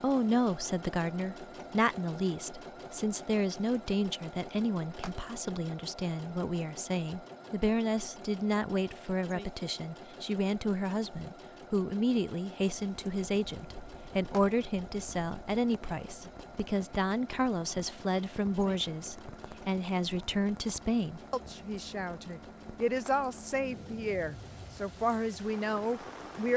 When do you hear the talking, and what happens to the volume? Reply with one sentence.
You can hear the talking from 0.0 to 26.5 s, at a steady volume.